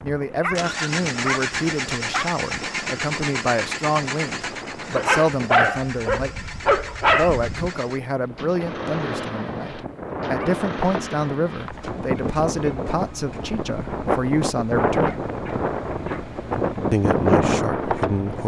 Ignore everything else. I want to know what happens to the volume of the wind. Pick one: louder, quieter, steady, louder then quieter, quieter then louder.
louder.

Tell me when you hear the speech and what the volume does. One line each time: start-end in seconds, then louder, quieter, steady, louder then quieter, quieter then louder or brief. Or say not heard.
0.0-15.3 steady
16.9-18.4 brief.